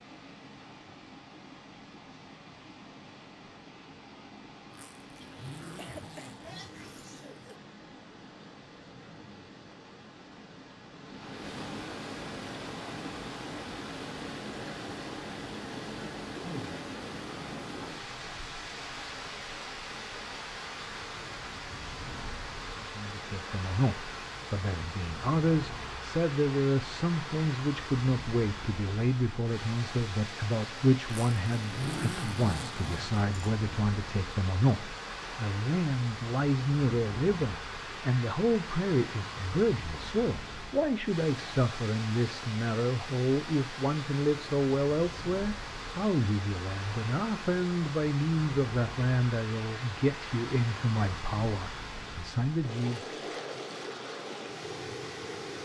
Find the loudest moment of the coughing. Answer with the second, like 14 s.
6 s.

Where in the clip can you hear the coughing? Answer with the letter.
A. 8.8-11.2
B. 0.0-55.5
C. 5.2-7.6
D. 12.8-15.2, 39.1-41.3
C.